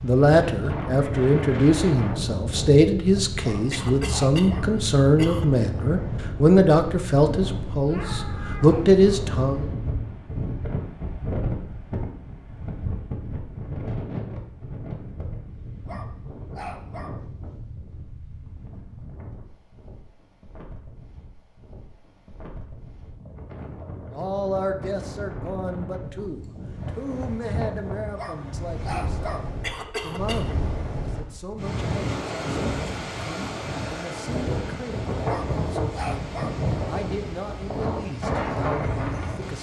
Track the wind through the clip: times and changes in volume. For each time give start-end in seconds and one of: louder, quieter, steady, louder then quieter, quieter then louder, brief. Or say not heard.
0.0-39.5 quieter then louder.